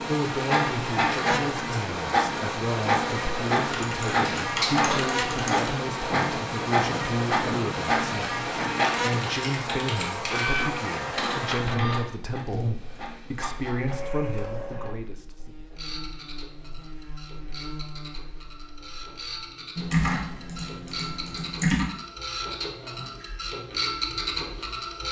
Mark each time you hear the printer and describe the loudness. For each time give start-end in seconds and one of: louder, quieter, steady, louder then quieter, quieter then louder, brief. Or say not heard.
0.0-25.0 quieter then louder.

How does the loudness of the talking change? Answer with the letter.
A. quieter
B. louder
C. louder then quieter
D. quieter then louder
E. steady
E.